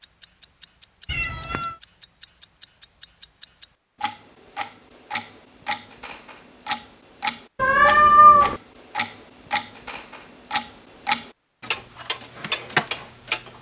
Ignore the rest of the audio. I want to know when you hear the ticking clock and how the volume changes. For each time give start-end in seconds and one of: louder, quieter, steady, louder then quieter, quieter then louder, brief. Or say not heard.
0.0-13.5 louder.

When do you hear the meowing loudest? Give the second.
8 s.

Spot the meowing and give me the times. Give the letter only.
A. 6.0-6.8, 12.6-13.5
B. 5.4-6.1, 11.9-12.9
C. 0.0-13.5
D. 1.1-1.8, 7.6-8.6
D.